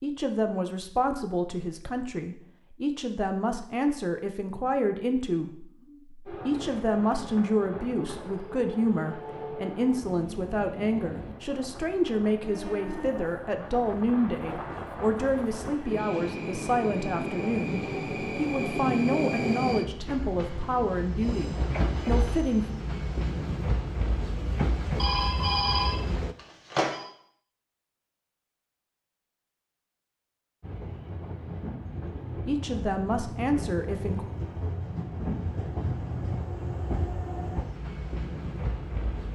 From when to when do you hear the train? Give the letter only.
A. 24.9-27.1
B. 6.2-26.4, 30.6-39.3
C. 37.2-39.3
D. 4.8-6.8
B.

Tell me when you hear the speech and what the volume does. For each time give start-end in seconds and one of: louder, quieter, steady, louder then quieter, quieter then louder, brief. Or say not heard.
0.0-22.7 steady
32.5-34.3 brief.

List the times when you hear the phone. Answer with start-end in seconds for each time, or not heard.
24.9-27.1.